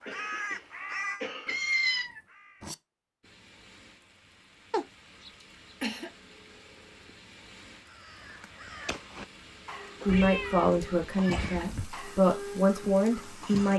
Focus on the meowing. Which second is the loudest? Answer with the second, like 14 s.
2 s.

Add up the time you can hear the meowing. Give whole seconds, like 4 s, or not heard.
4 s.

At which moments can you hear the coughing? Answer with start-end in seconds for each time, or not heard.
0.1-1.6, 5.4-6.1, 11.2-11.7.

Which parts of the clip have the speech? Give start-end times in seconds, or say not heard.
10.1-13.7.